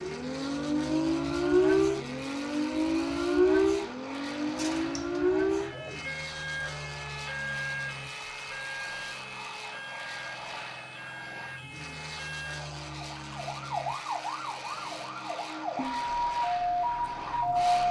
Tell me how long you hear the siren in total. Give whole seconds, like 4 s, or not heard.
18 s.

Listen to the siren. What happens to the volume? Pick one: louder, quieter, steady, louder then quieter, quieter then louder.
quieter then louder.